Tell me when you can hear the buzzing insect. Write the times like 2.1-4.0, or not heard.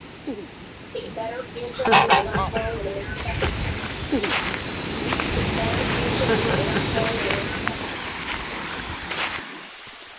not heard.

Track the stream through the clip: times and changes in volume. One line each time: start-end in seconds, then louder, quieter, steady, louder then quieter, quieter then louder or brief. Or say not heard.
0.0-10.1 louder then quieter.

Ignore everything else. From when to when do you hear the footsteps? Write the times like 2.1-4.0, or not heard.
3.1-9.4.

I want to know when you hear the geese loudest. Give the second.
2 s.